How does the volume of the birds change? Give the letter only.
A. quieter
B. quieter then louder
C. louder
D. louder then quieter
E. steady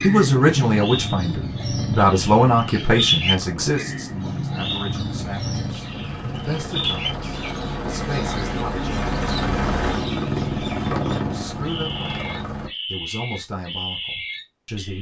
B.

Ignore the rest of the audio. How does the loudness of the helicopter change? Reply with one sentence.
The volume of the helicopter goes up.